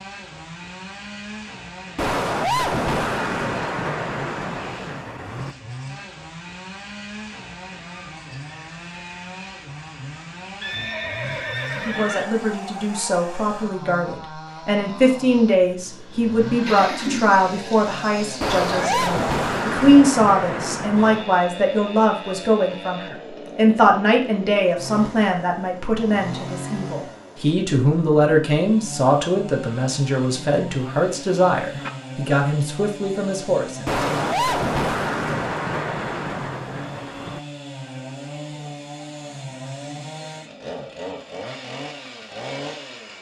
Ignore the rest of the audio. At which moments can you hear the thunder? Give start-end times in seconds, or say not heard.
1.9-5.5, 18.4-21.4, 33.9-37.4.